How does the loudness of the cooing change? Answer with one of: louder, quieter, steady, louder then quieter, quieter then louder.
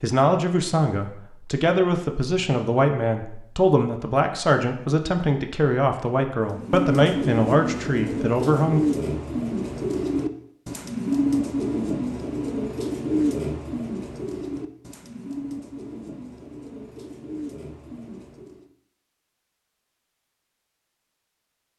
quieter.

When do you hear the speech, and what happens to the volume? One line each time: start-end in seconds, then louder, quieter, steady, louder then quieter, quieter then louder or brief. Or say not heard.
0.0-8.8 steady.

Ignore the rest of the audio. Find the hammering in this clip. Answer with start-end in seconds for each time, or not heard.
not heard.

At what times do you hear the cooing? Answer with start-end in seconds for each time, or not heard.
6.5-18.7.